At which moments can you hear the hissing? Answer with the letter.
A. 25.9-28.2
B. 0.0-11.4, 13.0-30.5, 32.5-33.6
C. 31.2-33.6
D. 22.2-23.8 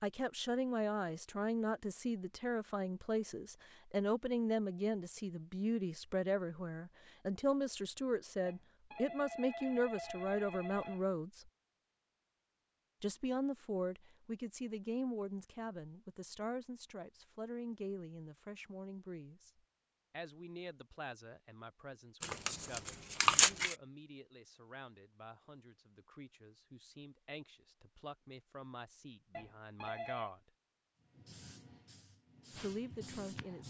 C.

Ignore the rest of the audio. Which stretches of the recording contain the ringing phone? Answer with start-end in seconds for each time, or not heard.
8.4-11.1, 29.3-30.3.